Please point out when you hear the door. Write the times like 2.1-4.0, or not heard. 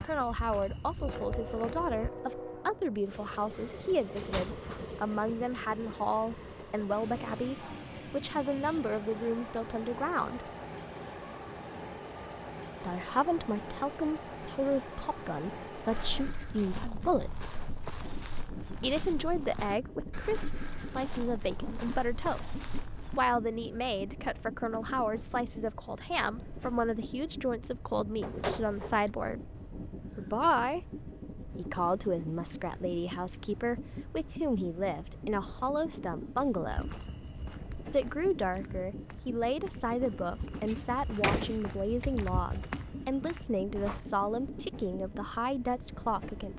3.5-4.8, 28.2-29.1, 40.6-42.7.